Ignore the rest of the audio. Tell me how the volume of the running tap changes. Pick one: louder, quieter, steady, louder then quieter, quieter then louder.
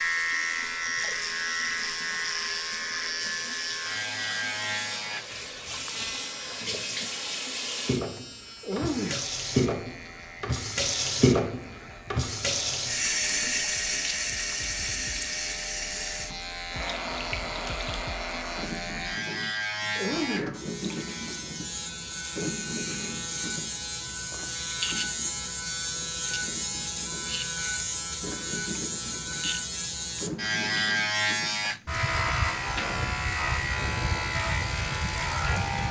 louder then quieter.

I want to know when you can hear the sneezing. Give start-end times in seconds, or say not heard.
8.6-9.2, 19.9-20.6.